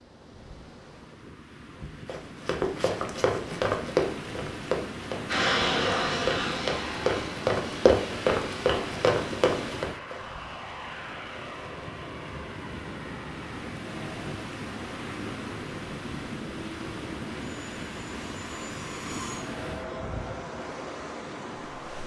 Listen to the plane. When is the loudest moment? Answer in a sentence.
The volume of the plane peaks at 6 seconds.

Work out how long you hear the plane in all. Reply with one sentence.
You can hear the plane for 17 seconds altogether.